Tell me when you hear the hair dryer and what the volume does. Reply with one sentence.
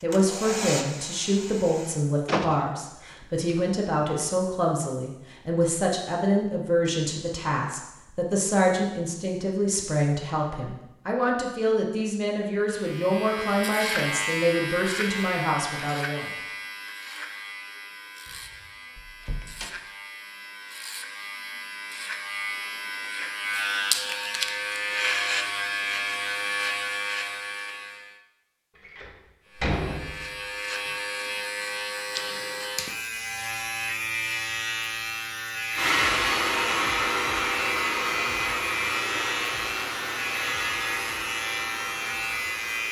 The hair dryer can be heard briefly from 0.1 to 2.0 s; and from 35.8 to 42.8 s, getting quieter.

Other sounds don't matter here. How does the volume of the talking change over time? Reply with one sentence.
The volume of the talking stays about the same.